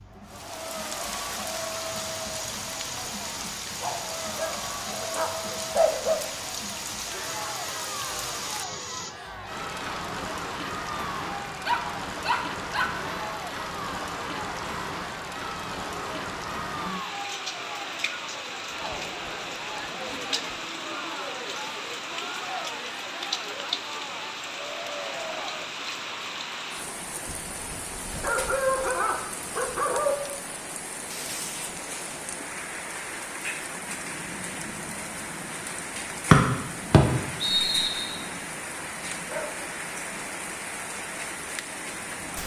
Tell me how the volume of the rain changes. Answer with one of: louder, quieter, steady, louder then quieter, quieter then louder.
steady.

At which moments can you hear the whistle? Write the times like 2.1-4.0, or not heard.
36.3-38.1.